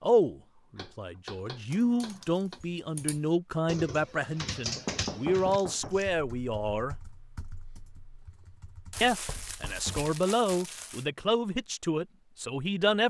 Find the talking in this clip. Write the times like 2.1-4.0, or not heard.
0.0-7.0, 9.0-13.0.